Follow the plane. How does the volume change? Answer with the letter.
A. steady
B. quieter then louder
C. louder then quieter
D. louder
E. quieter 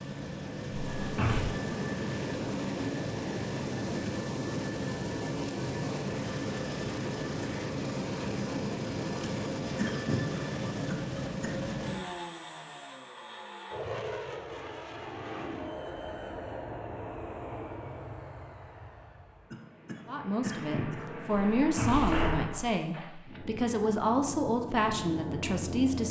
E.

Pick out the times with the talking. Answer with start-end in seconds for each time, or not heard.
20.1-26.0.